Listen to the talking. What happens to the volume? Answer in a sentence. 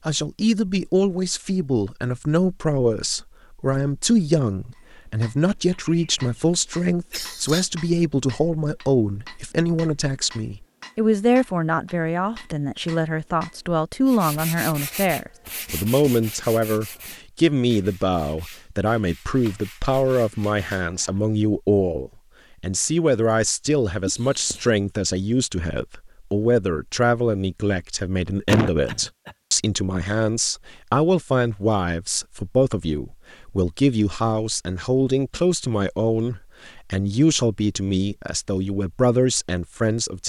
The volume of the talking stays about the same.